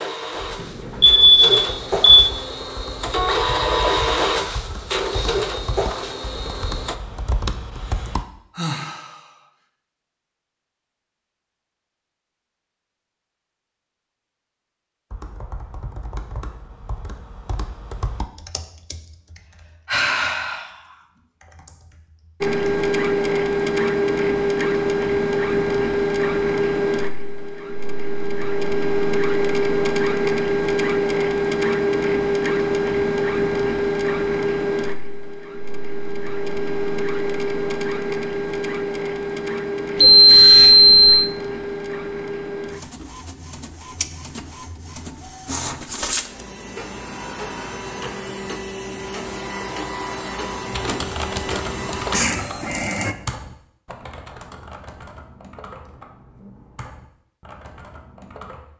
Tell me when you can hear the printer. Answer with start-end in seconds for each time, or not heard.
0.0-7.0, 22.4-53.1.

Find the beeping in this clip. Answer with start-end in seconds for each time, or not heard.
1.0-2.3, 40.0-41.3.